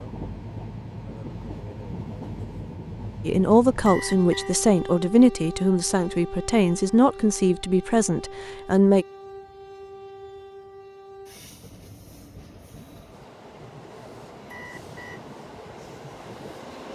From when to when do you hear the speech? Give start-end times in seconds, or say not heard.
3.2-9.1.